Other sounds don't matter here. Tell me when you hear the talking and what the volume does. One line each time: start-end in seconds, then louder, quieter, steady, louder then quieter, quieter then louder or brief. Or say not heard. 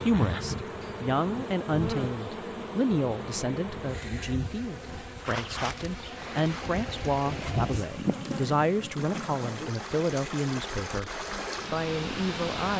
0.1-11.1 steady
11.7-12.7 brief.